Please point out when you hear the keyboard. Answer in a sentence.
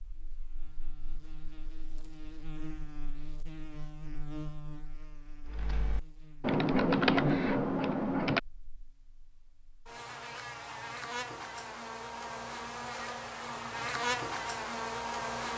The keyboard can be heard from 5.5 to 8.4 s.